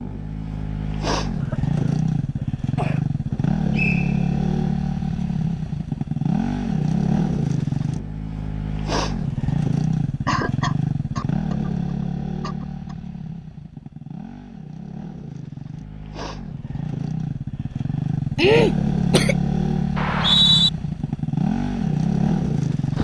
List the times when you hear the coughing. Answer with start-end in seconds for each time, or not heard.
1.4-3.0, 10.2-11.7, 12.4-12.9, 18.4-19.4.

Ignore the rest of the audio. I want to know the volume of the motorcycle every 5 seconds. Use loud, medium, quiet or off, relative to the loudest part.
loud, loud, medium, loud, loud.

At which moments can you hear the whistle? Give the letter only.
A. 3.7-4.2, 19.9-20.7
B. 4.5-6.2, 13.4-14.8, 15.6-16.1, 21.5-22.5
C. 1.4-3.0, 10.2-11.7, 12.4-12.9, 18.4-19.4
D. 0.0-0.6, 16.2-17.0
A.